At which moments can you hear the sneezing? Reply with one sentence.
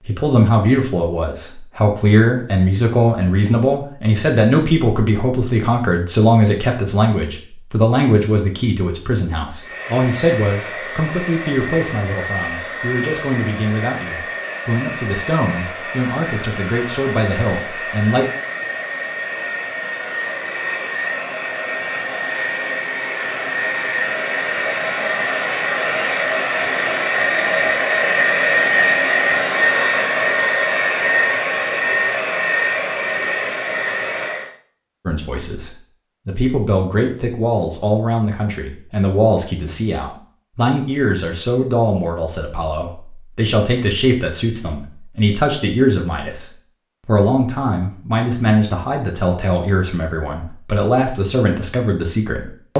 The sneezing can't be heard in this clip.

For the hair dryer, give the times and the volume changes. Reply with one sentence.
The hair dryer can be heard from 9.6 to 34.5 s, getting louder.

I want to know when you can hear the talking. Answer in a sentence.
The talking can be heard from 0.0 to 18.2 s and from 35.0 to 52.7 s.